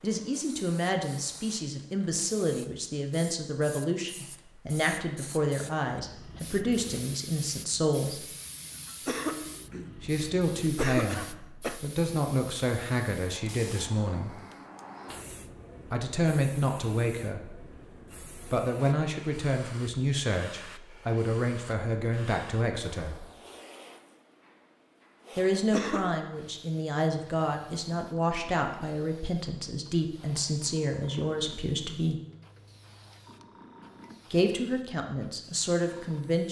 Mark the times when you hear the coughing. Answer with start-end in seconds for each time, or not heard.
9.1-10.1, 10.8-11.8, 25.7-26.2.